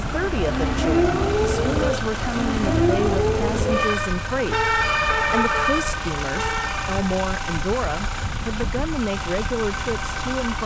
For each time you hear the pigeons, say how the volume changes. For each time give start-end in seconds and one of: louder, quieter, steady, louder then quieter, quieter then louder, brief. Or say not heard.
not heard.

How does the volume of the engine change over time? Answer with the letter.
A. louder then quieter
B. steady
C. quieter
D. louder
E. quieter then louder
B.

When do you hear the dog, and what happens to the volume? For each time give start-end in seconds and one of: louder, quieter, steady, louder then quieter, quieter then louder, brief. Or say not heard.
not heard.